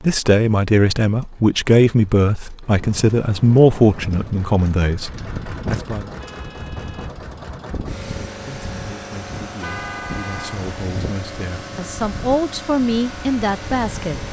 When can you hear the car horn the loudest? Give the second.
10 s.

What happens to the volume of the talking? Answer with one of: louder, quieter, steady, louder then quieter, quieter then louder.
quieter then louder.